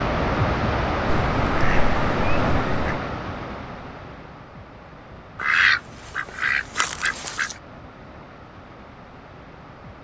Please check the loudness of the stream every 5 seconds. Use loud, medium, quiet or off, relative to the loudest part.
loud, quiet.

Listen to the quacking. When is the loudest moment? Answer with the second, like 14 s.
6 s.